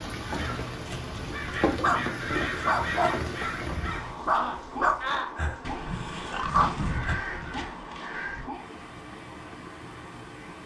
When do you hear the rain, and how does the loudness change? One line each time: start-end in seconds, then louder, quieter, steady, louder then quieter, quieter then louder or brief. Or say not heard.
0.0-10.6 quieter.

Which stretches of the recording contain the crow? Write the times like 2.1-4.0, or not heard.
0.2-8.5.